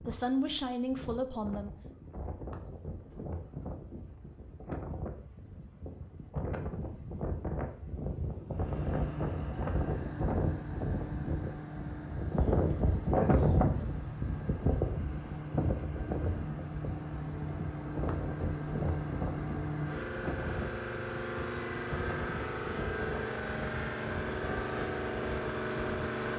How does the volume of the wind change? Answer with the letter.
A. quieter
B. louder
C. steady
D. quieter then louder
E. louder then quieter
E.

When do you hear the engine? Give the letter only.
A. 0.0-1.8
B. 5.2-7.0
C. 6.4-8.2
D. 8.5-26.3
D.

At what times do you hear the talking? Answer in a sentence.
You can hear the talking from 0.0 to 1.8 s.